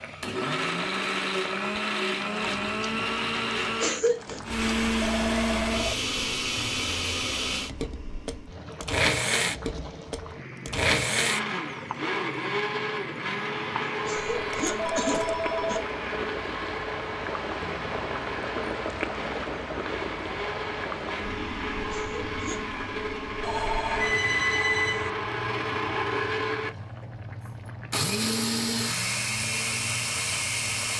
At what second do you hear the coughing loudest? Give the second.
4 s.